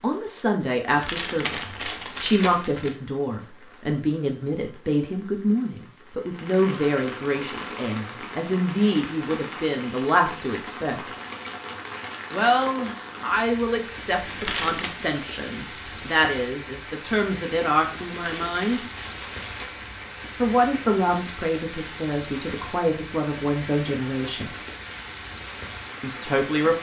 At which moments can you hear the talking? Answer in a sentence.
The talking can be heard from 0.0 to 11.0 s, from 12.3 to 18.8 s, from 20.4 to 24.5 s and from 26.0 to 26.7 s.